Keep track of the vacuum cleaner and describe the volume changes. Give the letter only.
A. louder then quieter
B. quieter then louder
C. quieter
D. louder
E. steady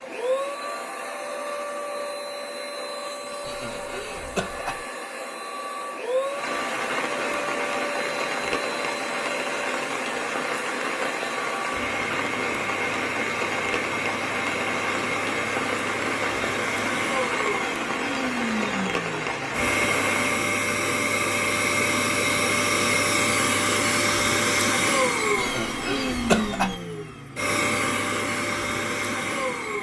D.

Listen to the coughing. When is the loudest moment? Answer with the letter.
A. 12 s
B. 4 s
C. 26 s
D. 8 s
C.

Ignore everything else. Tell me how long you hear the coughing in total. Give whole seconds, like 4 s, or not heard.
3 s.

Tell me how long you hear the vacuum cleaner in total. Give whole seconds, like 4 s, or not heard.
30 s.